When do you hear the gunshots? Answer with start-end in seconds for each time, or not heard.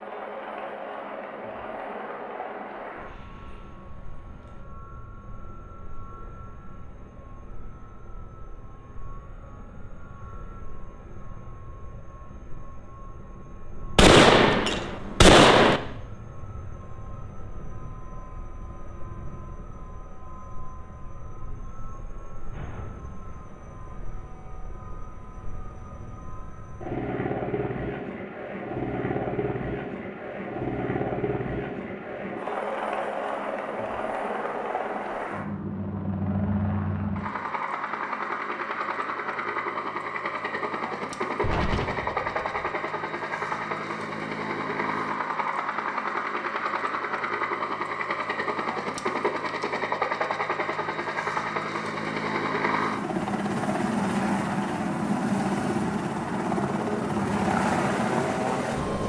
13.9-15.8, 41.4-42.5.